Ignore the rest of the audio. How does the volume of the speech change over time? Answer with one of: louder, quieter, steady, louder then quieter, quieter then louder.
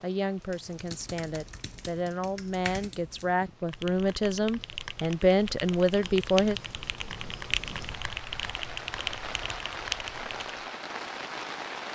louder.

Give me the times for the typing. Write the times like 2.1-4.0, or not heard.
0.4-10.5.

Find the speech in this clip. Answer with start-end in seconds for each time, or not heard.
0.0-6.6.